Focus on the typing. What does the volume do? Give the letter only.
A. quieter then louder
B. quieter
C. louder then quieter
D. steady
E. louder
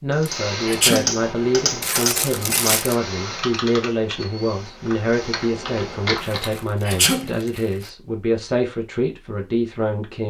A.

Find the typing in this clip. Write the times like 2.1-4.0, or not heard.
0.1-6.6.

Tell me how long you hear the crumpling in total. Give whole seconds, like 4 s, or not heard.
3 s.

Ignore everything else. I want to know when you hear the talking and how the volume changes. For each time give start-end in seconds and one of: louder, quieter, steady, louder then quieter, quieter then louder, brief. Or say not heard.
0.0-10.2 steady.